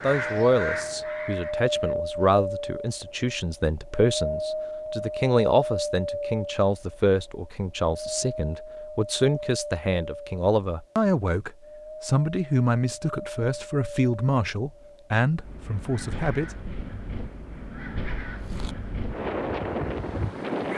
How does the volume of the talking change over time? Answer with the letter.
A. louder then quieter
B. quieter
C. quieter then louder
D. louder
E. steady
E.